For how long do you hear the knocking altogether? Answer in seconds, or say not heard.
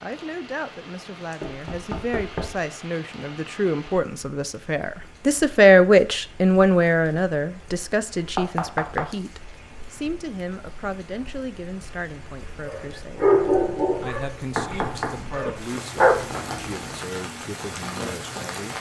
3 s.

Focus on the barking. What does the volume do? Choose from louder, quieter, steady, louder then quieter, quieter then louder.
quieter then louder.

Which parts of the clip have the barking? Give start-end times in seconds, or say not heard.
12.7-16.9.